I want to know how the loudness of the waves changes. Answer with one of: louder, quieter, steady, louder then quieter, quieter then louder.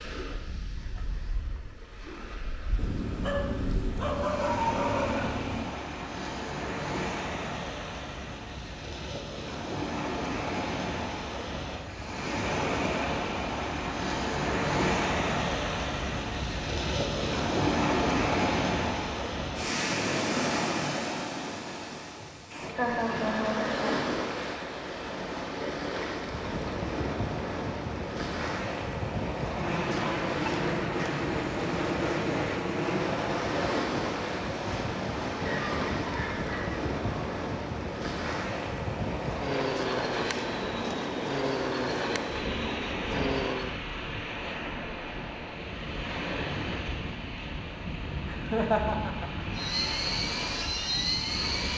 louder then quieter.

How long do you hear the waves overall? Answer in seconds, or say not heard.
52 s.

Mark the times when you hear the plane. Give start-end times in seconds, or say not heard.
26.2-43.8, 49.5-51.7.